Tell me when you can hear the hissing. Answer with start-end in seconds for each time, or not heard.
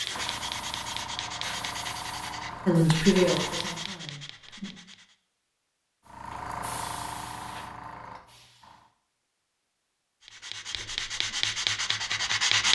0.0-4.0, 6.0-8.9.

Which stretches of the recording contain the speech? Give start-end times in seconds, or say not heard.
2.6-4.7.